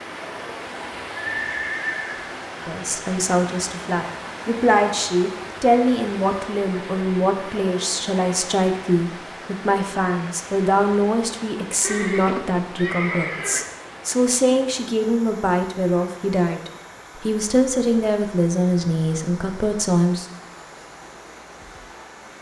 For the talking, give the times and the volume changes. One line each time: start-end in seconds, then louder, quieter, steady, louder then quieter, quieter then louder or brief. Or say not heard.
2.6-20.2 steady.